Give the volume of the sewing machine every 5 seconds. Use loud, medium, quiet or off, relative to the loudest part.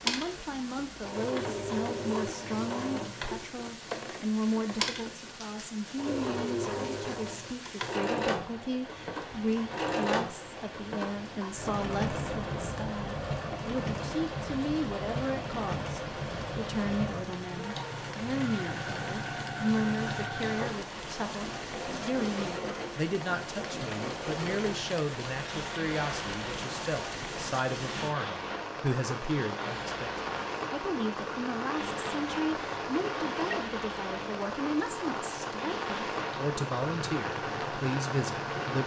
loud, loud, loud, loud, loud, medium, medium, medium.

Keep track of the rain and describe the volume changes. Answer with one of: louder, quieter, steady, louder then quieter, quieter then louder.
louder.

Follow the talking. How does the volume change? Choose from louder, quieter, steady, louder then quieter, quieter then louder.
steady.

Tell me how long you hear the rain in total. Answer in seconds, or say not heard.
39 s.